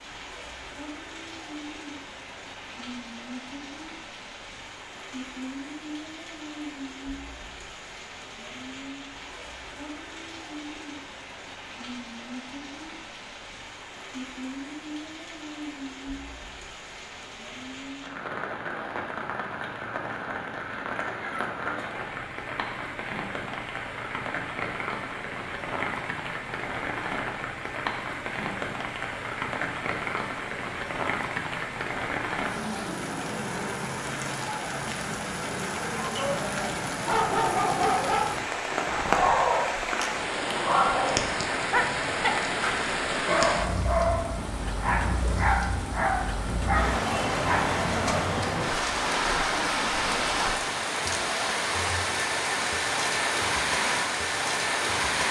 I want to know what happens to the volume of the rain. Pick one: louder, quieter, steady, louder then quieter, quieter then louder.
louder.